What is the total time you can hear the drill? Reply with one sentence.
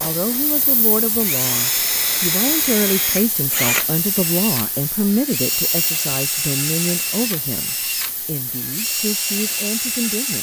You can hear the drill for 10 seconds altogether.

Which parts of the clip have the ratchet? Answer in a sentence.
You can't hear the ratchet here.